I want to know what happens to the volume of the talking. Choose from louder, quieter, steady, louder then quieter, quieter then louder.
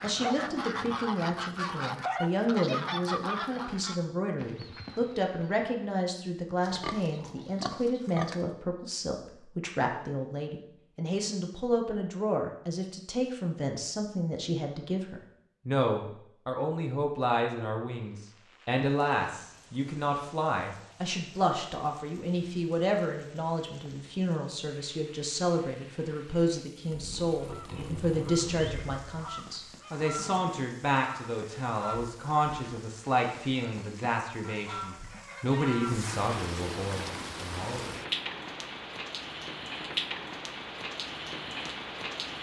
steady.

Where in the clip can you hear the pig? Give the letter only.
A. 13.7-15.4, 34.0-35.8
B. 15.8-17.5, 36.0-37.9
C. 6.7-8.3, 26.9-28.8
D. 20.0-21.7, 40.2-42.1
C.